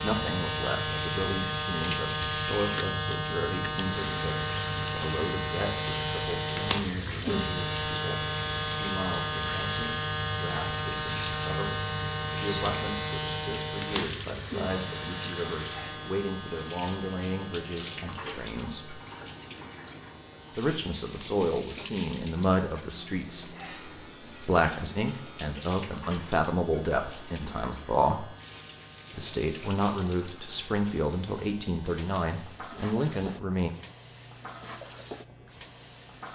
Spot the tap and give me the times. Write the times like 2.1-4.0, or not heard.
0.0-36.3.